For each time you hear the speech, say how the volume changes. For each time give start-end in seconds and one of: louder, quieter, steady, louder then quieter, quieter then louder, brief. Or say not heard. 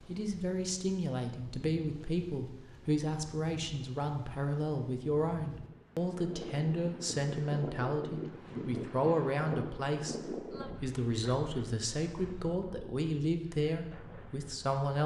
0.0-15.0 steady.